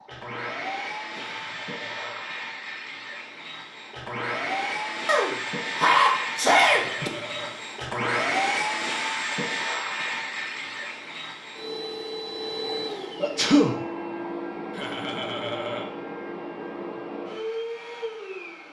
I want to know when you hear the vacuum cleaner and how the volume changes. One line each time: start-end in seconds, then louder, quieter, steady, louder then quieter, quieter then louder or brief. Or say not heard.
0.0-18.6 louder then quieter.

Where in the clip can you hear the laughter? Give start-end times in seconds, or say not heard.
1.1-2.3, 6.7-7.7, 14.7-15.9.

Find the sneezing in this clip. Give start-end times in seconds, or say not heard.
5.0-7.1, 13.2-13.8.